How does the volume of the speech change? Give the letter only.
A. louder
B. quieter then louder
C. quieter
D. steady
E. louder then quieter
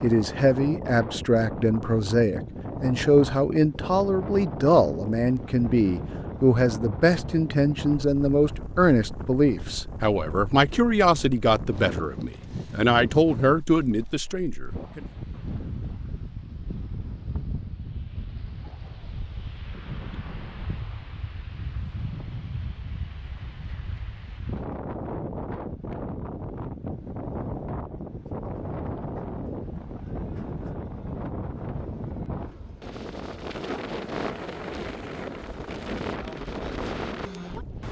D.